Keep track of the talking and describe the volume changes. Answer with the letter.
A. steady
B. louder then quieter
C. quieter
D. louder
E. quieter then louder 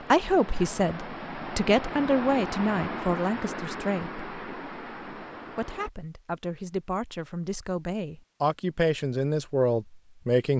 E.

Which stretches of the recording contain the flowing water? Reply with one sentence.
You can hear the flowing water from 0.0 to 5.9 s.